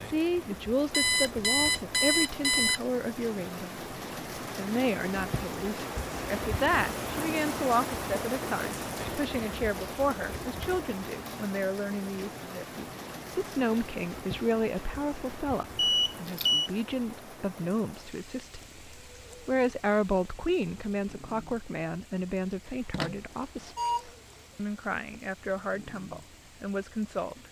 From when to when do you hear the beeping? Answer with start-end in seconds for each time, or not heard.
0.9-2.8, 15.8-16.7, 22.9-24.1.